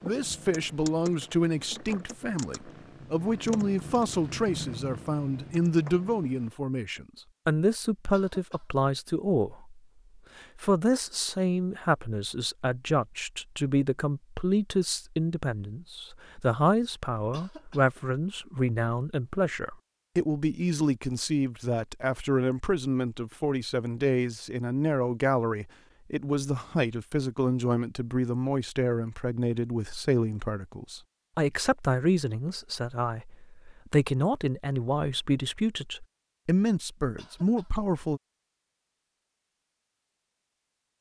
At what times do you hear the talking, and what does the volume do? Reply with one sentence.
You can hear the talking from 0.0 to 38.2 s, at a steady volume.